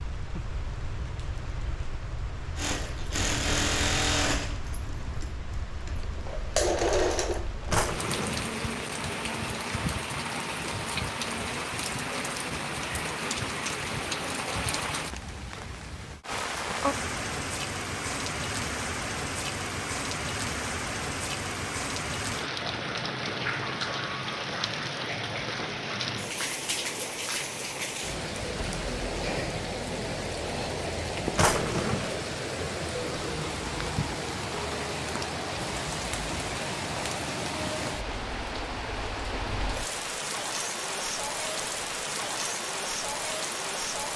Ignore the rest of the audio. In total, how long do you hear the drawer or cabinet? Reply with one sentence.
The drawer or cabinet can be heard for 2 seconds in total.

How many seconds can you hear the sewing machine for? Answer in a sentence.
You can hear the sewing machine for 5 seconds altogether.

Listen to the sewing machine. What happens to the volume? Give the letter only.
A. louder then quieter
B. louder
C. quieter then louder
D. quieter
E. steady
C.